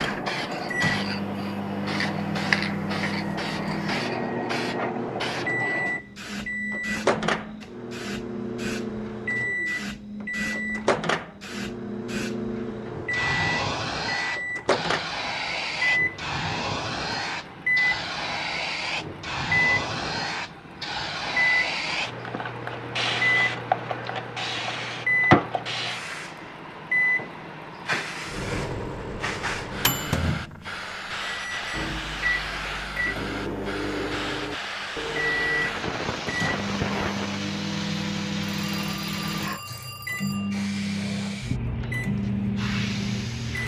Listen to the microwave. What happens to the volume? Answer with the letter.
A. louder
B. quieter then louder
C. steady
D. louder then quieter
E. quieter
C.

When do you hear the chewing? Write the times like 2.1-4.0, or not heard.
not heard.